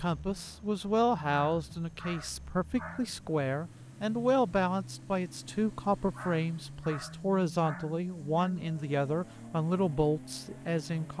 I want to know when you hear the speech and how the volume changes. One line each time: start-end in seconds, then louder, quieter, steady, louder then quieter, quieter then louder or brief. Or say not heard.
0.0-11.1 steady.